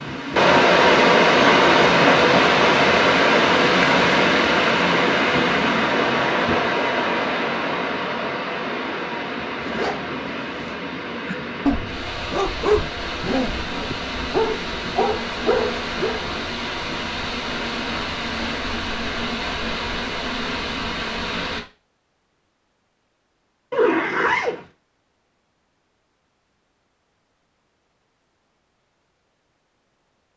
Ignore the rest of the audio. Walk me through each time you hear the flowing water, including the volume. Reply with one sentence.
The flowing water can be heard from 0.0 to 21.6 s, getting quieter.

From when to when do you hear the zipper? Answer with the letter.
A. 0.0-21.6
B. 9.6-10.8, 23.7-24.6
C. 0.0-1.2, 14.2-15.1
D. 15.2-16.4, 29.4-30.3
B.